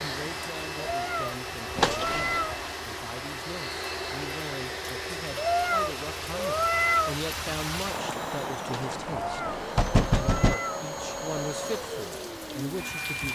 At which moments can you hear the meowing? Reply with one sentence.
The meowing can be heard from 0.8 to 2.6 s, from 5.3 to 7.2 s and from 9.1 to 10.8 s.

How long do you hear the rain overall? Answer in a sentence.
You can hear the rain for 13 seconds altogether.